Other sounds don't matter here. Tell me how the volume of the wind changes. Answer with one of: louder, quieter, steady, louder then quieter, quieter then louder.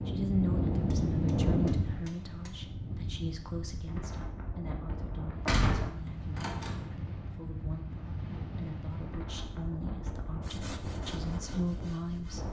quieter.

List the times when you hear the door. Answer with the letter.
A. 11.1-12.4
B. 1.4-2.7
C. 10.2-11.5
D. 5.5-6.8
D.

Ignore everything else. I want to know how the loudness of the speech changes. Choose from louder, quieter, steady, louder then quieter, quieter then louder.
quieter then louder.